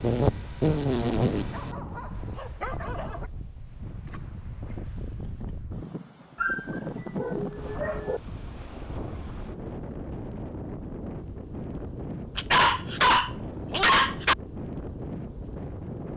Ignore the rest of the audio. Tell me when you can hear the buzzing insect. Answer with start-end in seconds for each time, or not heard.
0.0-1.8.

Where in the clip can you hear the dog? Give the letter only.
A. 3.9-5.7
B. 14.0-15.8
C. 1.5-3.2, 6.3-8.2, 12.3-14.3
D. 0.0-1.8
C.